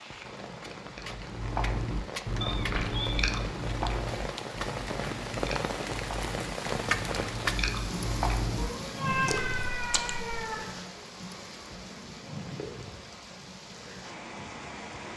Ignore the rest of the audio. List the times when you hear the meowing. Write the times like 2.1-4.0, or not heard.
2.4-3.2, 8.6-10.6.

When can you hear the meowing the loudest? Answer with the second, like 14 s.
9 s.